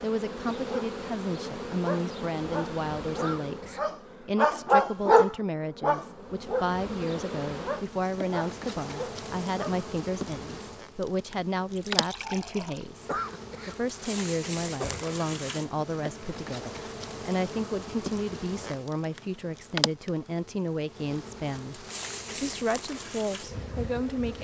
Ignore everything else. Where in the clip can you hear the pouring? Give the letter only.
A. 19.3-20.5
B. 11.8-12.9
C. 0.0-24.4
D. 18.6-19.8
B.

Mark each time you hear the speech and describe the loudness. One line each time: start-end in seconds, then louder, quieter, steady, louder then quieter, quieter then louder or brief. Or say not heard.
0.0-24.4 steady.